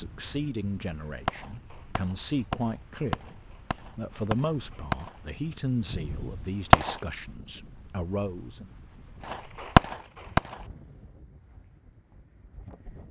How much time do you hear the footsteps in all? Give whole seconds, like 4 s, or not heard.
not heard.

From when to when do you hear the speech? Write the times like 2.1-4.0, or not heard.
0.0-8.7.